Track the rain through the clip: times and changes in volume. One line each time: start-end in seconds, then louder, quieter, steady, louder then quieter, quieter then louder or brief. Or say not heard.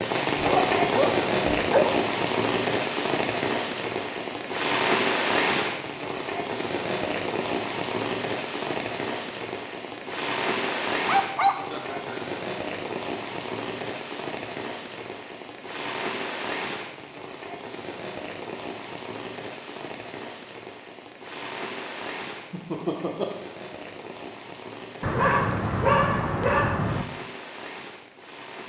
0.0-28.6 quieter.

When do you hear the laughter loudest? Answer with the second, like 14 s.
23 s.